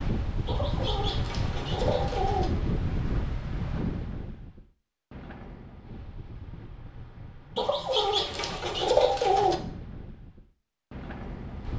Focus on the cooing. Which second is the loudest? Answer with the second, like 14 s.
9 s.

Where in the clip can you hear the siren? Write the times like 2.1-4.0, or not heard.
not heard.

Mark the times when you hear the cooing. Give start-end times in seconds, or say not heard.
0.5-2.5, 7.5-9.6.